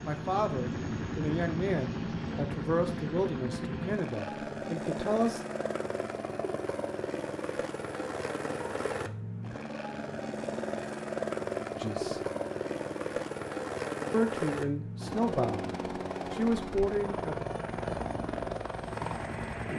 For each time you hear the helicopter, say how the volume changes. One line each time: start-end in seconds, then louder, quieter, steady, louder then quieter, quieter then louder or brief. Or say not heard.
0.0-19.7 steady.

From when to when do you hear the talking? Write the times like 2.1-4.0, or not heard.
0.0-5.4, 11.8-12.2, 14.1-17.4.